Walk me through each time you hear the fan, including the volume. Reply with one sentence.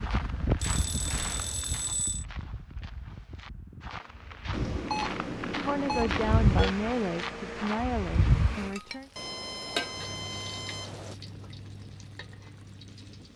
You can hear the fan from 0.0 to 8.8 s, getting quieter then louder.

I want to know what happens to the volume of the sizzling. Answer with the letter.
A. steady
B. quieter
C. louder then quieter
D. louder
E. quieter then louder
C.